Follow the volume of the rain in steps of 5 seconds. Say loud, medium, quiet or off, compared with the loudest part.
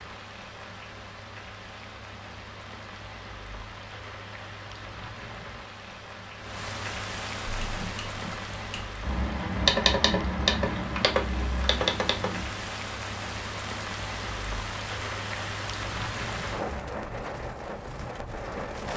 medium, loud, loud, loud.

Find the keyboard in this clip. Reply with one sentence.
You can hear the keyboard from 7.6 to 12.6 s.